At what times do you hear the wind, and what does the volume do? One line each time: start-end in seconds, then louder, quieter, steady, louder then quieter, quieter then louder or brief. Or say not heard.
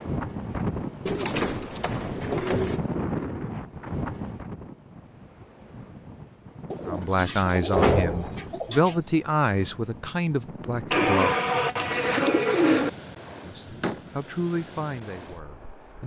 0.0-16.0 quieter.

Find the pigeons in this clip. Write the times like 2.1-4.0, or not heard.
1.1-2.8, 6.7-9.0, 10.9-12.9.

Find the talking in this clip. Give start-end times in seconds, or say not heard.
6.8-11.3, 13.4-16.0.